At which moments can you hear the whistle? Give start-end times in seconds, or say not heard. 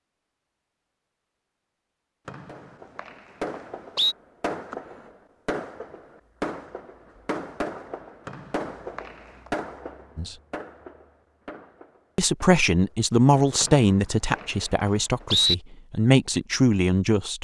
2.2-4.2, 8.2-9.5, 13.6-15.6.